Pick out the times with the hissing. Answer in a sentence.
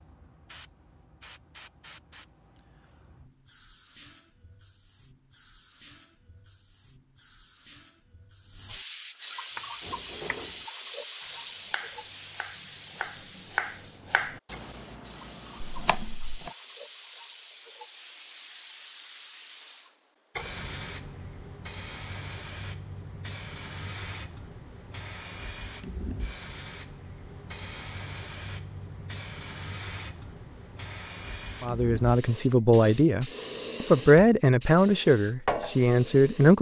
You can hear the hissing from 0.0 to 36.5 s.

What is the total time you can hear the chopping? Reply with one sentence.
You can hear the chopping for 6 seconds altogether.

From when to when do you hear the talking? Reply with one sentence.
You can hear the talking from 31.6 to 36.5 s.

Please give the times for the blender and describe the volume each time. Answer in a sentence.
The blender can't be heard in this clip.